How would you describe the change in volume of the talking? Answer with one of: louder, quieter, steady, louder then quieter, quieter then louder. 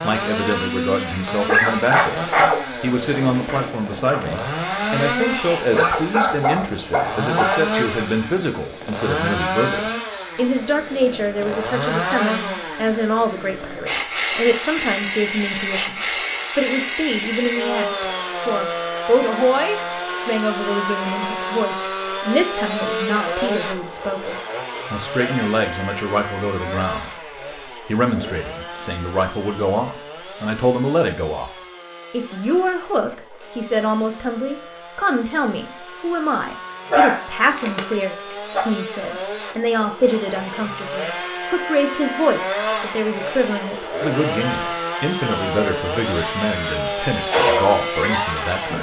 steady.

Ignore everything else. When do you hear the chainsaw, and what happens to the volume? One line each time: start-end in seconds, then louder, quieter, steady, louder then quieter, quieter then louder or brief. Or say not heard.
0.0-48.7 quieter then louder.